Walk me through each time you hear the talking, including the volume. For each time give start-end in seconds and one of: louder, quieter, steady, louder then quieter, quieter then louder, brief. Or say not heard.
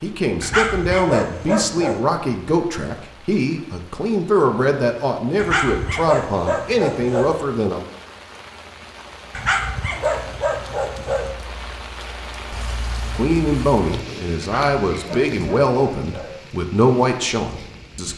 0.0-7.8 steady
13.2-18.1 steady.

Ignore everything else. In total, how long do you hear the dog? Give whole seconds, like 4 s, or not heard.
8 s.